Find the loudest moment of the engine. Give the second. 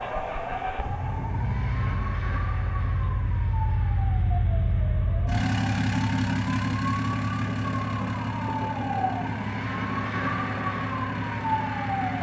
6 s.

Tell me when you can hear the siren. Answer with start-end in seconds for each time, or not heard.
0.0-12.1.